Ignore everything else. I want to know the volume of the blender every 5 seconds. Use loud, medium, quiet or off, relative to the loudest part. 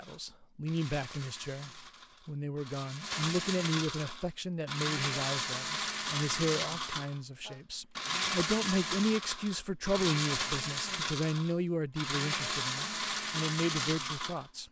medium, loud, loud.